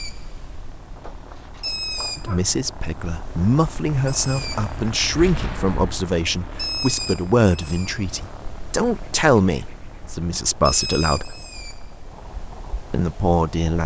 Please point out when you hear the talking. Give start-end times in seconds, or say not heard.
2.1-11.3, 12.9-13.8.